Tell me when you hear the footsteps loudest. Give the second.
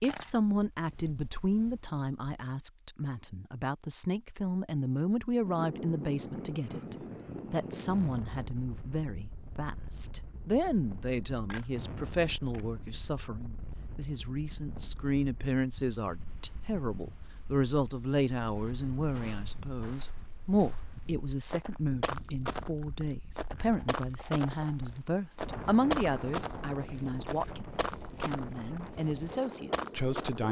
26 s.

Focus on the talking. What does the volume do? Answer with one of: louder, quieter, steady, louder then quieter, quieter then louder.
steady.